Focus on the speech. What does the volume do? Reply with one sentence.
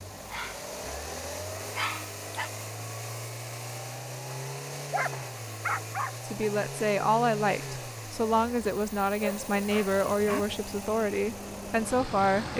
The volume of the speech stays about the same.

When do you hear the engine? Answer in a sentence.
You can hear the engine from 0.0 to 12.5 s.